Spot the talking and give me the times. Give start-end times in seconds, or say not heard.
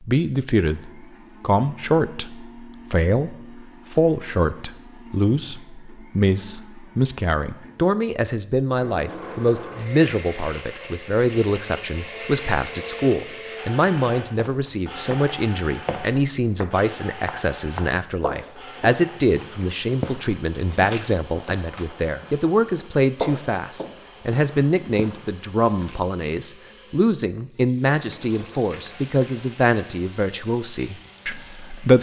0.0-31.9.